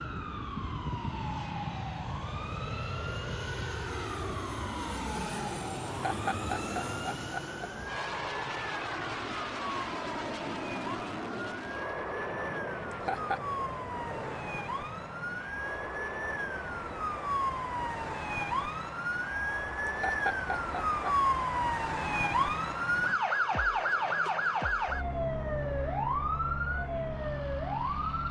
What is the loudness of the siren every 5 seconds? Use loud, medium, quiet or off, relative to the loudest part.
quiet, quiet, medium, medium, loud, loud.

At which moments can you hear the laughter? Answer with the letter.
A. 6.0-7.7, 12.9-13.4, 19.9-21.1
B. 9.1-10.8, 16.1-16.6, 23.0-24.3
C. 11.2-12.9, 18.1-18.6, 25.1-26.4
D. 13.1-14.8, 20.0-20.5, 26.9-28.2
A.